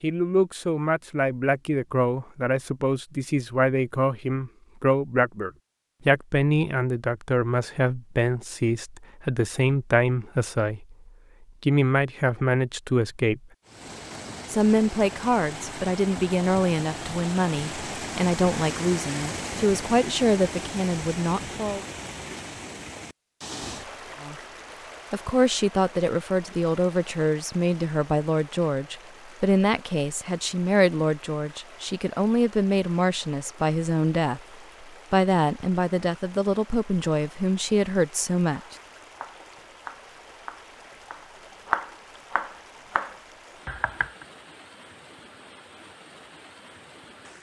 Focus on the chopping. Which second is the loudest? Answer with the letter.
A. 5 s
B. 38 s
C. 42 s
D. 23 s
C.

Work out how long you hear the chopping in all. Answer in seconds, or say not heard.
6 s.